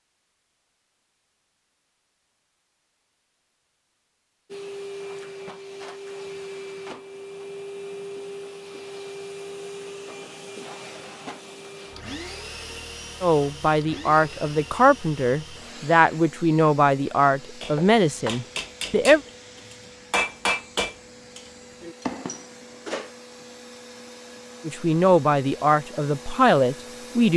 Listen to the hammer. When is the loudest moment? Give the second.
20 s.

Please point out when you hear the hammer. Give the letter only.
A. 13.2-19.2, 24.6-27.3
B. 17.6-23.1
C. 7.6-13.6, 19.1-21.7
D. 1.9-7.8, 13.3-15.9
B.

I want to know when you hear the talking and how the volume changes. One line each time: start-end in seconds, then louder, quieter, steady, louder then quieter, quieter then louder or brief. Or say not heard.
13.2-19.2 steady
24.6-27.3 brief.